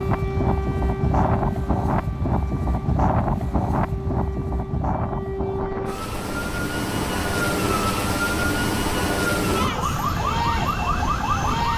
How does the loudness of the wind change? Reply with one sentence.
The loudness of the wind goes down.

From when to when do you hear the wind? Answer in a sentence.
You can hear the wind from 0.0 to 11.7 s.